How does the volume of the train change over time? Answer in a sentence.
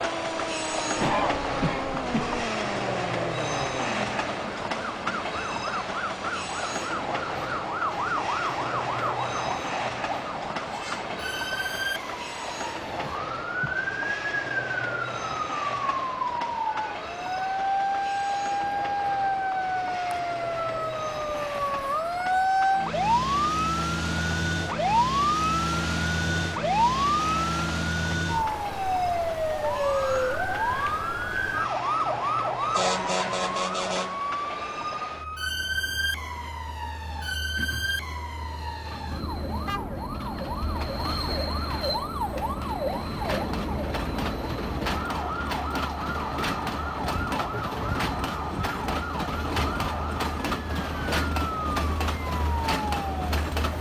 The loudness of the train goes down, then up.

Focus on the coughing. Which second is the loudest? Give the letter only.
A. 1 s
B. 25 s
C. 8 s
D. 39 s
A.